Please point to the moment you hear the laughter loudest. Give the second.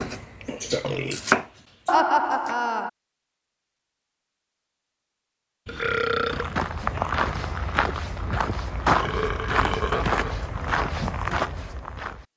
2 s.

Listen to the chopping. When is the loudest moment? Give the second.
1 s.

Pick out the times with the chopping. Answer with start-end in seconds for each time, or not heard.
0.0-2.5.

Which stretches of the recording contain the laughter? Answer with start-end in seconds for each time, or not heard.
1.9-2.9, 9.6-10.1.